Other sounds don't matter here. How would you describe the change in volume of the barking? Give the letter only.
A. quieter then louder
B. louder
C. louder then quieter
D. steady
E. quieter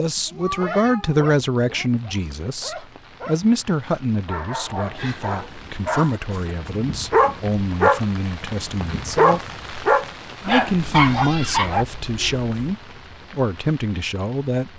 B.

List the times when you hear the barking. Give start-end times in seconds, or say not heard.
0.5-11.8.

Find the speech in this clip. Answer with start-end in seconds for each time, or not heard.
0.0-9.4, 10.4-14.7.